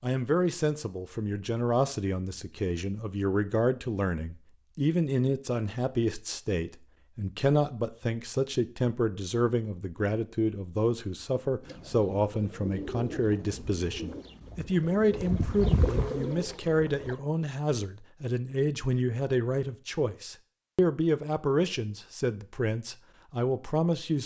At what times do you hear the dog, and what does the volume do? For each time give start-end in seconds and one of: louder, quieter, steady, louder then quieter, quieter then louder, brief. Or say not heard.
not heard.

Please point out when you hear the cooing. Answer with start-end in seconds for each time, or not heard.
11.6-17.2.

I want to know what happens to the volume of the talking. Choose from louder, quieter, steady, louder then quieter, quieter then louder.
steady.